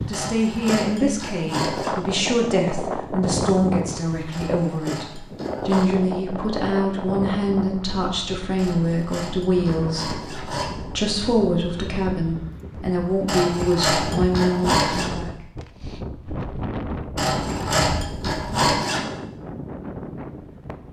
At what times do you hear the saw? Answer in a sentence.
You can hear the saw from 0.1 to 1.9 s, from 4.3 to 5.9 s, from 8.6 to 10.8 s, from 13.2 to 15.1 s and from 17.1 to 19.1 s.